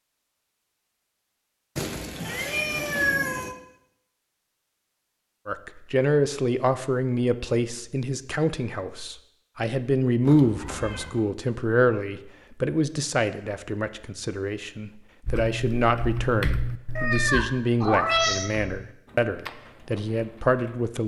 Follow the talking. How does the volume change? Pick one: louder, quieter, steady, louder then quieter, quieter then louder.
steady.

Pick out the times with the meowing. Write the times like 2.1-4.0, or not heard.
1.8-3.5, 10.2-11.2, 16.9-18.5.